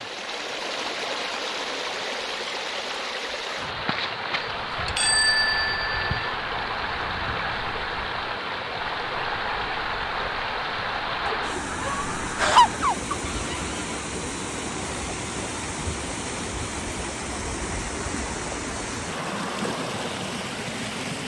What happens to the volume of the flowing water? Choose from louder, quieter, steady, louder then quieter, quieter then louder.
steady.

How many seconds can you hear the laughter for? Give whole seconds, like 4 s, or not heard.
2 s.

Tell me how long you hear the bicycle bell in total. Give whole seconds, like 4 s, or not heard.
2 s.